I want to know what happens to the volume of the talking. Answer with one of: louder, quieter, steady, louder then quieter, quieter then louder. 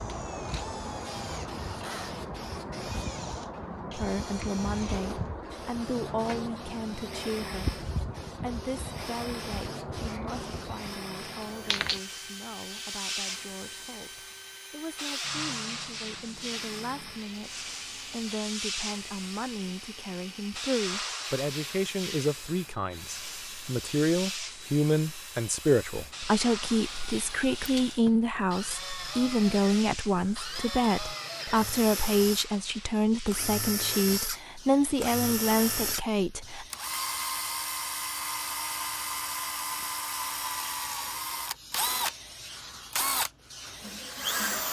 quieter then louder.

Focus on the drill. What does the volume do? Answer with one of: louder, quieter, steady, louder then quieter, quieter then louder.
louder.